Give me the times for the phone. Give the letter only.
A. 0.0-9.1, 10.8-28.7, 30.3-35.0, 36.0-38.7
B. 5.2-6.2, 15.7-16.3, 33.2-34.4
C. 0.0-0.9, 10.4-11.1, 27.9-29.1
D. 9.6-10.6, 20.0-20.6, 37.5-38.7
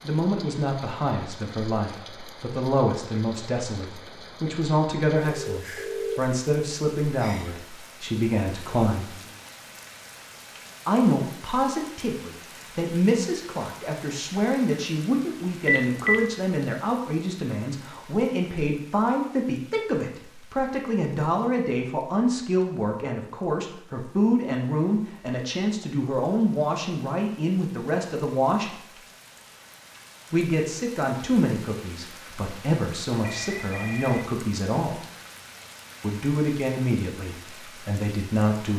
B.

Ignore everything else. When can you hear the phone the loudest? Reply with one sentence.
The volume of the phone peaks at 16 seconds.